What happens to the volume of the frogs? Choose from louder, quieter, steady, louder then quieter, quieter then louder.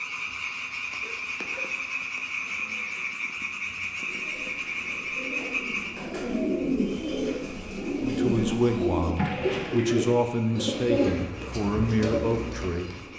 quieter.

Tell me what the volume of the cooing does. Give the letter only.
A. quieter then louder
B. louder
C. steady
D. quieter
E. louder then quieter
B.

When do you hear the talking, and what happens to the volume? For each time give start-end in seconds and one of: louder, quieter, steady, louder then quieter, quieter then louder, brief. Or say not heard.
8.0-12.9 steady.